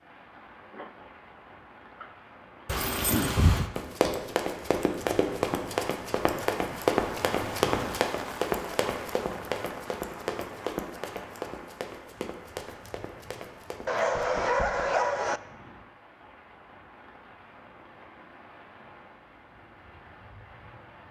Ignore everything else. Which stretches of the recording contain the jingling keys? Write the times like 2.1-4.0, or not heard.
2.6-3.6.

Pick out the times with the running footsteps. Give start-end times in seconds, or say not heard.
3.8-14.8.